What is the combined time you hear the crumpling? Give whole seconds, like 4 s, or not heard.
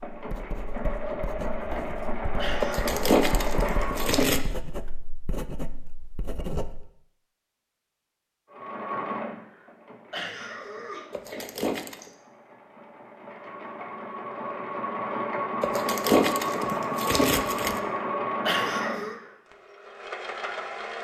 5 s.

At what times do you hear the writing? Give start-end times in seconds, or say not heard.
0.1-7.0.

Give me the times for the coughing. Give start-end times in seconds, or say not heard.
2.4-3.0, 10.1-12.1, 18.4-19.1.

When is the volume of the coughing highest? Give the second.
19 s.